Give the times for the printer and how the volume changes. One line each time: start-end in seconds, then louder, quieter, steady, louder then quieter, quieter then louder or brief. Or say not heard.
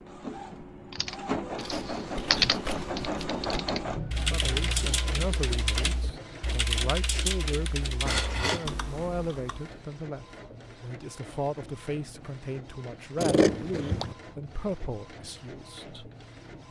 0.0-16.6 quieter.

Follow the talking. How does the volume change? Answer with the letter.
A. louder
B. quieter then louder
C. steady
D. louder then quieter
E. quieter
C.